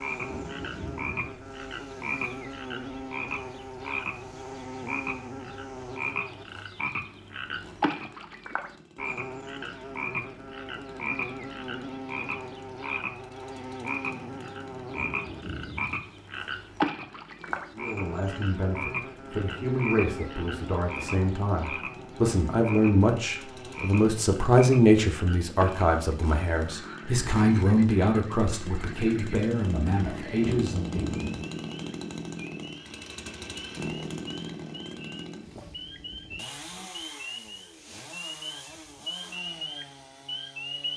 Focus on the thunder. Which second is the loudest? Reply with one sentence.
The loudest moment of the thunder is at 31 seconds.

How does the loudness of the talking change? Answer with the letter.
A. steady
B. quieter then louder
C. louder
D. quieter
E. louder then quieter
E.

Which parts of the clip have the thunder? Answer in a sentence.
The thunder can be heard from 0.2 to 1.4 s, from 14.8 to 16.0 s and from 30.4 to 31.5 s.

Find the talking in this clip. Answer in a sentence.
The talking can be heard from 17.8 to 31.1 s.